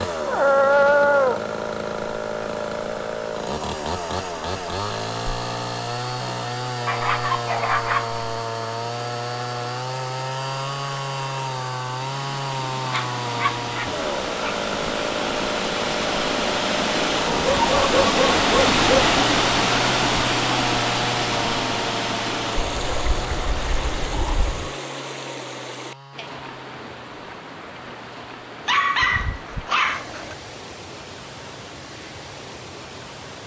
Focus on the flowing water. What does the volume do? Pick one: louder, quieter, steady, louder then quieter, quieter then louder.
louder then quieter.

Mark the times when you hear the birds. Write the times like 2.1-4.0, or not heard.
not heard.